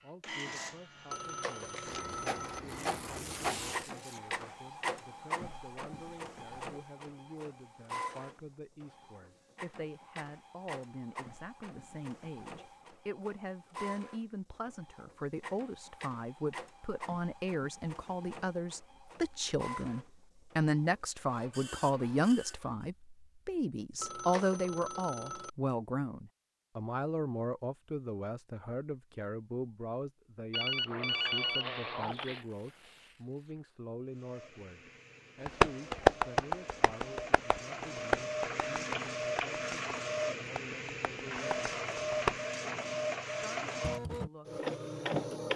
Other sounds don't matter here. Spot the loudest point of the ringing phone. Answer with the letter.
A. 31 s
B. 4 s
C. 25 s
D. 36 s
A.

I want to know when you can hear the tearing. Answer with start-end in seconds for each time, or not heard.
2.7-4.3, 32.2-33.6.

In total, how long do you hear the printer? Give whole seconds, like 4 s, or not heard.
34 s.